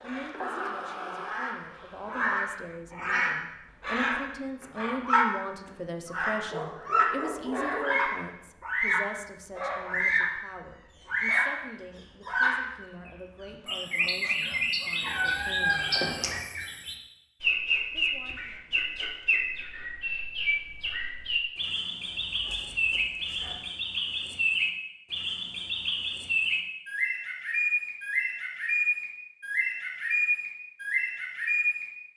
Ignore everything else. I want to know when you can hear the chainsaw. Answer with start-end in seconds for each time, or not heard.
0.0-2.8.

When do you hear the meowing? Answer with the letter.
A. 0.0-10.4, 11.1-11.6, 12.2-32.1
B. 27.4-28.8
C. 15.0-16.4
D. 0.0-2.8
C.